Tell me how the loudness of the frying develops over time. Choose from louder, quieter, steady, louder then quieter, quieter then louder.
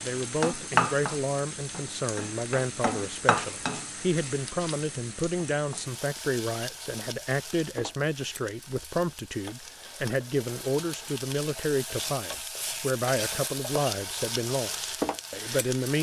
quieter then louder.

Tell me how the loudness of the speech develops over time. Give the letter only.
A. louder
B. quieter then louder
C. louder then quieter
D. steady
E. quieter
D.